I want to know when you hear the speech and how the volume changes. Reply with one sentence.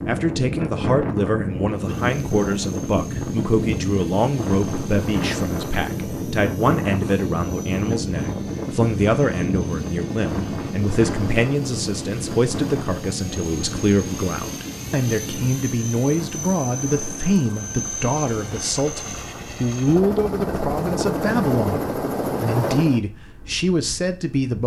The speech can be heard from 0.1 to 24.6 s, at a steady volume.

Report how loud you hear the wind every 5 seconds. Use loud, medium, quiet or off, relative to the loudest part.
loud, loud, loud, medium, quiet.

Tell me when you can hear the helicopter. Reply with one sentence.
You can hear the helicopter from 1.7 to 23.0 s.